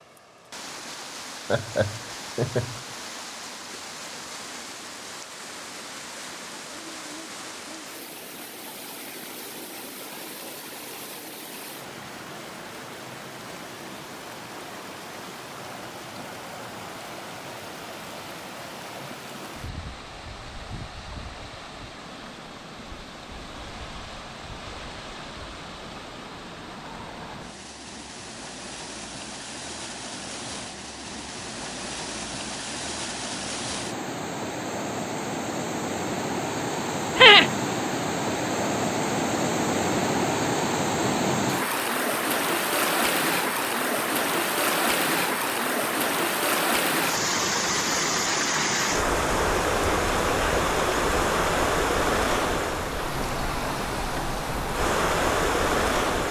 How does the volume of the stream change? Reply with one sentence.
The loudness of the stream goes up.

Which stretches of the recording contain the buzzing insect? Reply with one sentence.
The buzzing insect can't be heard in this clip.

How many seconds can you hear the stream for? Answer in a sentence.
You can hear the stream for 56 seconds altogether.